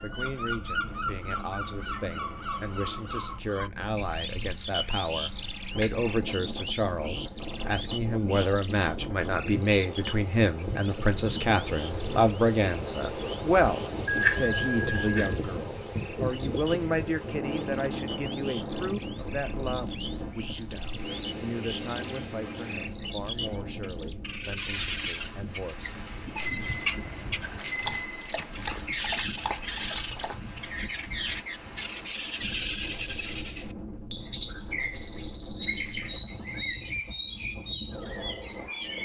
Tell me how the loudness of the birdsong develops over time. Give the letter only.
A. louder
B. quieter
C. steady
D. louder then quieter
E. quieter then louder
E.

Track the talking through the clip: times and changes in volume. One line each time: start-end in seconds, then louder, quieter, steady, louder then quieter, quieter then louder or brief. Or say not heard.
0.0-25.9 louder then quieter.